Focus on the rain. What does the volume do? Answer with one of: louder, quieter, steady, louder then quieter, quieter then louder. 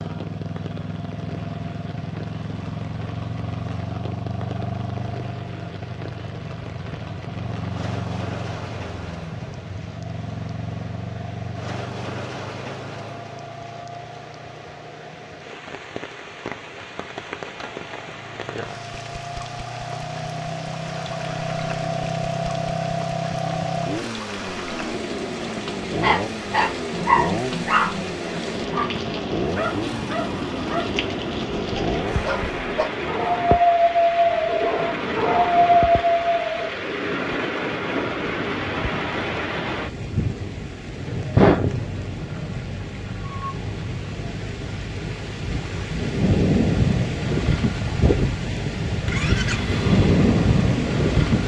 louder.